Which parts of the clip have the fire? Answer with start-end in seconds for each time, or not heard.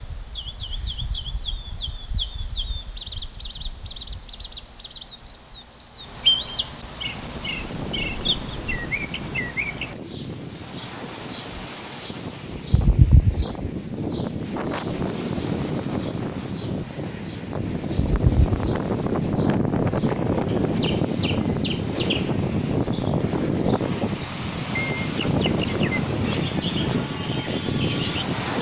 not heard.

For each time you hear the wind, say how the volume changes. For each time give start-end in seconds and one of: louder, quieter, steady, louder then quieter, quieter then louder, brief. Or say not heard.
7.0-28.5 louder.